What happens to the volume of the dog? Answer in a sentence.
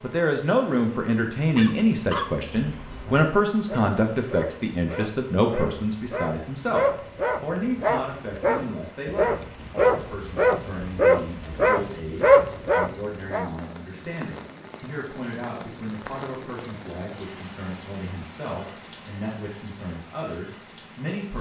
The loudness of the dog goes up.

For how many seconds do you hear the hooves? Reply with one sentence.
You can't hear the hooves here.